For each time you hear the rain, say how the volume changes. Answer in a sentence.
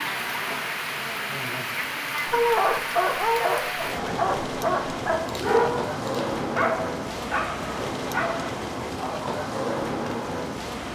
The rain can be heard from 0.0 to 10.9 s, at a steady volume.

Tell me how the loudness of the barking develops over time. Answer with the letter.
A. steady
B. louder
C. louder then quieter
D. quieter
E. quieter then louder
D.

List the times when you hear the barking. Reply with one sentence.
The barking can be heard from 2.2 to 8.6 s.